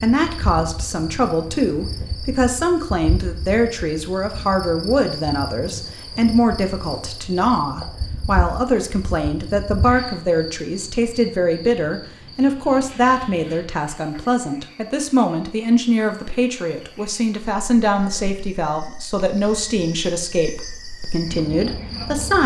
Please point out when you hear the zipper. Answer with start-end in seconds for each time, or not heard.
not heard.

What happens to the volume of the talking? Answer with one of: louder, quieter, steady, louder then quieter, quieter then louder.
steady.